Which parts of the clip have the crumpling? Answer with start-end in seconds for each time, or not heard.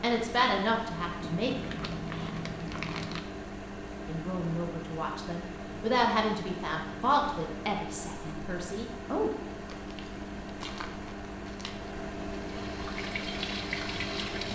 1.2-3.2, 9.5-11.9.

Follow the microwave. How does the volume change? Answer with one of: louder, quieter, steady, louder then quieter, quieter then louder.
steady.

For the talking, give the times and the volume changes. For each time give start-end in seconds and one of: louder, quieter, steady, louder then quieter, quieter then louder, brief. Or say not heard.
0.0-1.9 brief
4.0-9.3 louder then quieter.